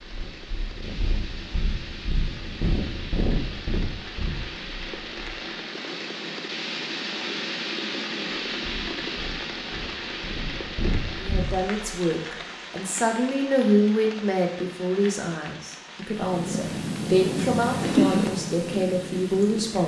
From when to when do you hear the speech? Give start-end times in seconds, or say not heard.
11.2-19.8.